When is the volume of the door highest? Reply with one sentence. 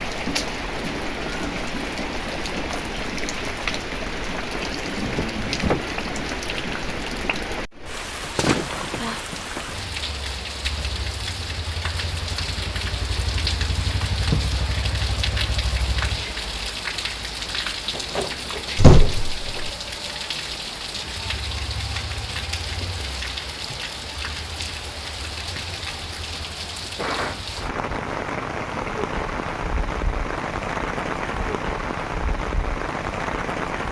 The volume of the door peaks at 19 seconds.